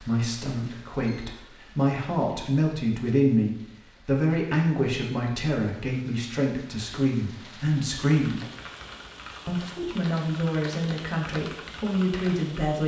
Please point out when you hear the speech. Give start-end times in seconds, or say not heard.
0.0-8.4, 9.4-12.8.